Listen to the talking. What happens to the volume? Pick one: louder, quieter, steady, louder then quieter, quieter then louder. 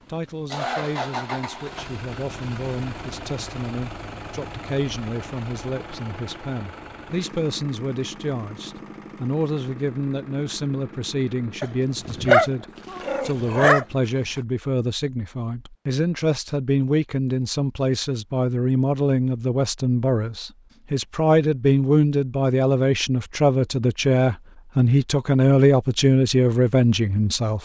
louder.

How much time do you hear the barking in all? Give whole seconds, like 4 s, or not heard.
3 s.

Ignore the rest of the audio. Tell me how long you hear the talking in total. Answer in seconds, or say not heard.
27 s.